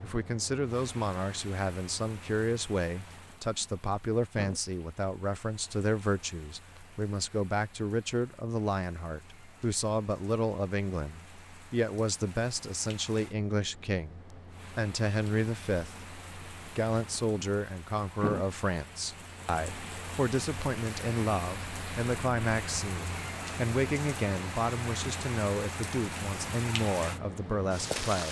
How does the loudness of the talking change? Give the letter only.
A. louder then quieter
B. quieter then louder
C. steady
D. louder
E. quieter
C.